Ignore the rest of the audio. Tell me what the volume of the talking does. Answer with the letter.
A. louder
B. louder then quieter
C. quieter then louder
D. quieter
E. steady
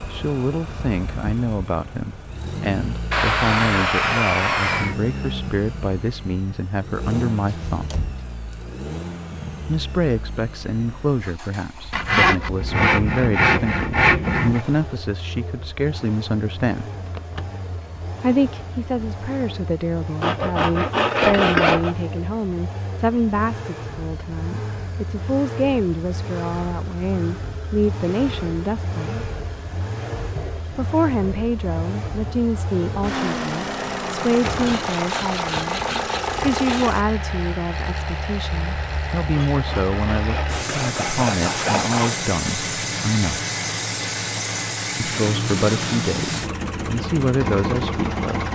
E.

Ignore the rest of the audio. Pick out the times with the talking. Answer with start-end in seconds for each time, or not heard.
0.1-8.0, 9.7-16.9, 18.2-29.2, 30.8-43.4, 45.0-48.4.